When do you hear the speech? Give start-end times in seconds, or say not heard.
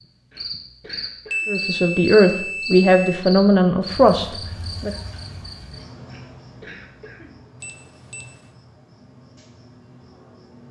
1.4-4.9.